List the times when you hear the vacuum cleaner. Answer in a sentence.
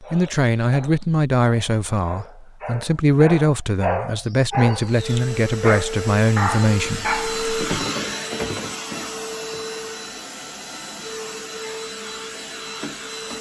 You can hear the vacuum cleaner from 4.8 to 13.3 s.